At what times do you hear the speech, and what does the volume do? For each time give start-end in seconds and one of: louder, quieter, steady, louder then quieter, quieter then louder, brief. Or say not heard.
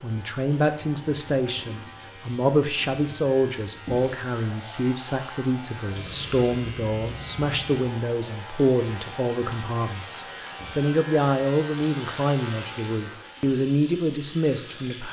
0.0-15.0 steady.